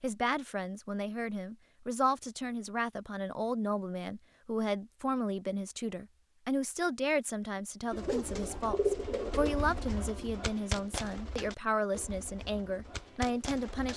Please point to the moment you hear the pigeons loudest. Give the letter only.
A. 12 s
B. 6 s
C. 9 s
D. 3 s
C.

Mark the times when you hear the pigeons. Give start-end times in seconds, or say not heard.
7.9-13.9.